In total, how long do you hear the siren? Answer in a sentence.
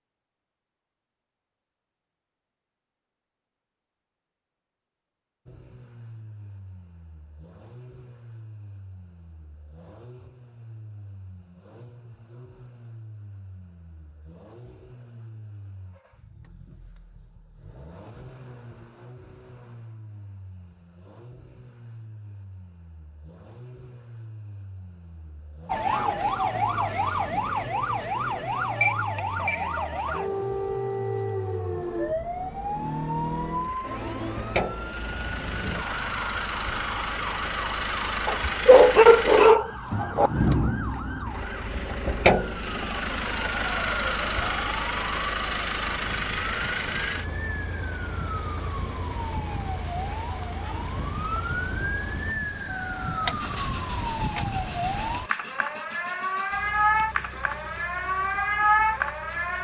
You can hear the siren for 34 seconds altogether.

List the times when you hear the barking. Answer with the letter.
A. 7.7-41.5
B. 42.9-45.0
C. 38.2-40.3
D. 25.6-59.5
C.